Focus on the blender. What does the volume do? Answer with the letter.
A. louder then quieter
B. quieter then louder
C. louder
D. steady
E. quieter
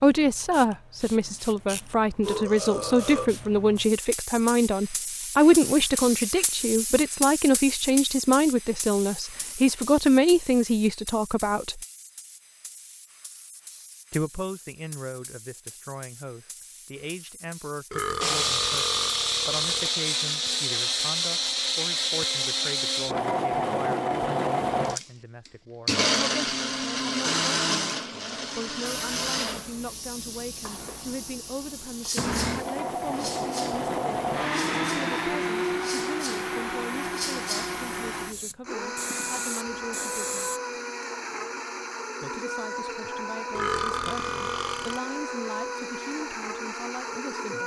E.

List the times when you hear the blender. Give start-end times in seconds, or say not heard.
18.2-47.6.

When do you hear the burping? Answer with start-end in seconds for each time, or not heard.
1.2-3.3, 17.9-19.9, 43.5-45.0.